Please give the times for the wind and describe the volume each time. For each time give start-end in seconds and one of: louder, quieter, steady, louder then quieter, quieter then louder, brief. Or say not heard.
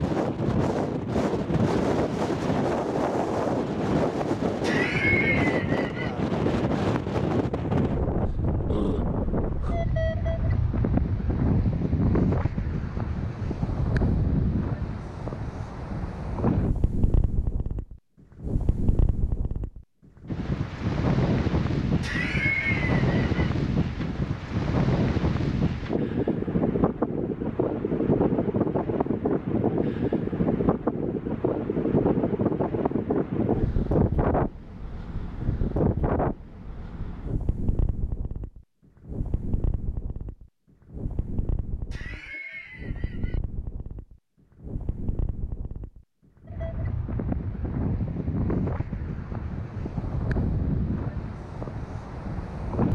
0.0-52.9 quieter.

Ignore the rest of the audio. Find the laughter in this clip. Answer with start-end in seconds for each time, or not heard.
4.6-6.1, 22.0-23.5, 41.9-43.4.